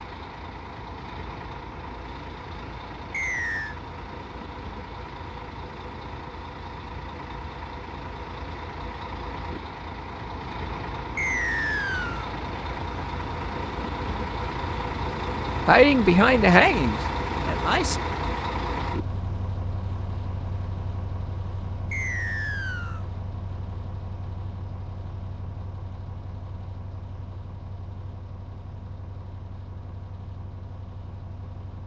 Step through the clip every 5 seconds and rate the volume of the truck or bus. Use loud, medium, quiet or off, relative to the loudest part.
medium, medium, loud, loud, medium, quiet, quiet.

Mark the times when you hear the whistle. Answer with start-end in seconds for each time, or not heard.
3.1-3.8, 11.2-12.3, 21.9-23.1.